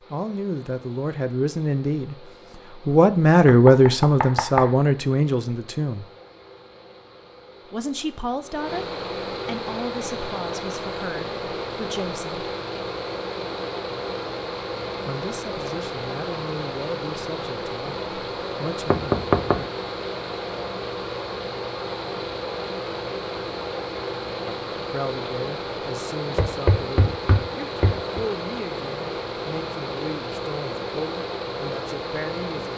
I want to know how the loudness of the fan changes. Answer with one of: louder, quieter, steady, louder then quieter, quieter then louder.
louder.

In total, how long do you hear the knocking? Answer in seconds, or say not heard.
4 s.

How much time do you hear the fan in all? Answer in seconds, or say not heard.
33 s.